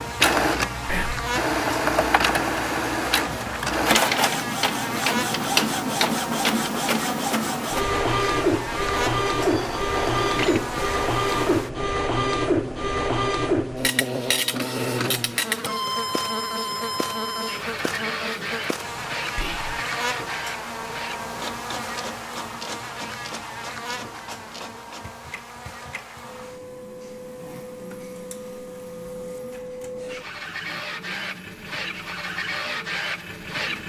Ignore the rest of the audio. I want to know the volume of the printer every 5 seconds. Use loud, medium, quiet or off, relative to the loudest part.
loud, loud, loud, medium, quiet, quiet, medium.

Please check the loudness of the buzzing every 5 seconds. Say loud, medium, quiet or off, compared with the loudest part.
loud, loud, loud, loud, loud, quiet, quiet.